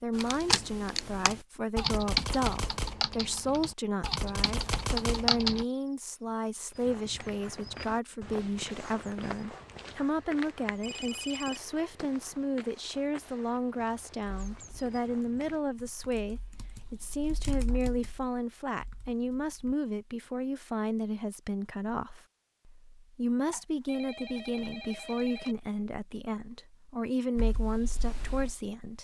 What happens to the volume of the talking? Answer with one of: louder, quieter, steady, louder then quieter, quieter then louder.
steady.